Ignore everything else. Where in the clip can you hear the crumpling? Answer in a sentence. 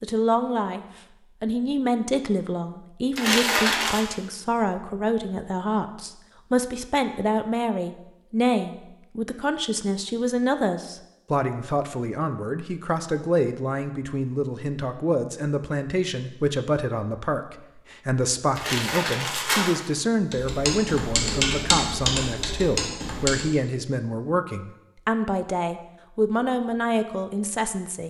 You can hear the crumpling from 3.1 to 4.0 s and from 18.6 to 19.8 s.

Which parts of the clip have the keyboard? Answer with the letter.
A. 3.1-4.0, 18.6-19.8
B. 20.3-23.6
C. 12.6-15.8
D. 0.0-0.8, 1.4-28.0
B.